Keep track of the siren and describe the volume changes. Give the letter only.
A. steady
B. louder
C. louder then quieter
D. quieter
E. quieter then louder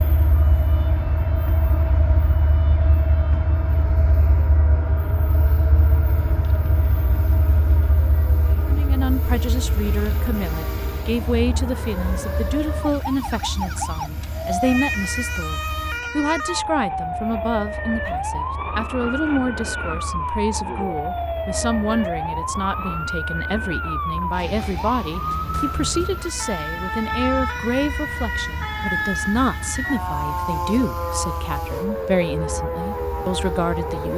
B.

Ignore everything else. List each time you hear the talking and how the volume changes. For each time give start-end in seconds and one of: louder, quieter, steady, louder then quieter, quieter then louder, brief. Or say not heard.
8.6-34.1 steady.